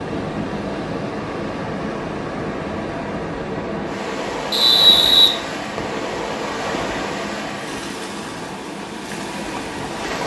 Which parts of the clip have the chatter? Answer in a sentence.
You can't hear the chatter here.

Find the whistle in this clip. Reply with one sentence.
You can hear the whistle from 4.5 to 6.0 s.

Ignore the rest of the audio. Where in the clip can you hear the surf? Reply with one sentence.
The surf can be heard from 0.0 to 10.2 s.